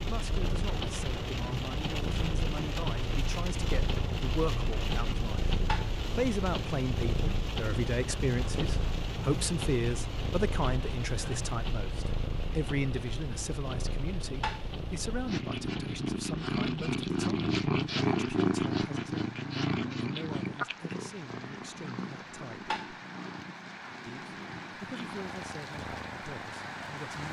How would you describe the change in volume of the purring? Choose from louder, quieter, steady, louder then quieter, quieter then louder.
louder then quieter.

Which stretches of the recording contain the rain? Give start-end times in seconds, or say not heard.
0.0-27.2.